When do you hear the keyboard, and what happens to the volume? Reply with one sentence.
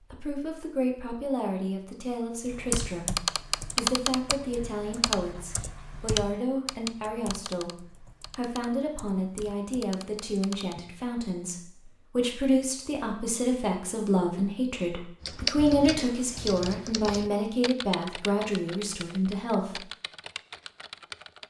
The keyboard can be heard from 2.5 to 10.8 s, getting quieter; and from 15.2 to 21.4 s, getting quieter.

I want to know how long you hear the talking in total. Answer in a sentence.
You can hear the talking for 20 seconds altogether.